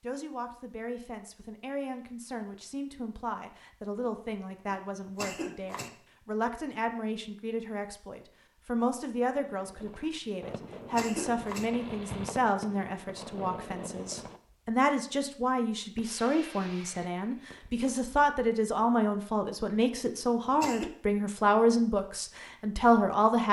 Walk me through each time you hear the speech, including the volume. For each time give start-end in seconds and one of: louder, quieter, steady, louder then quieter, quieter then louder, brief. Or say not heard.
0.0-23.4 louder.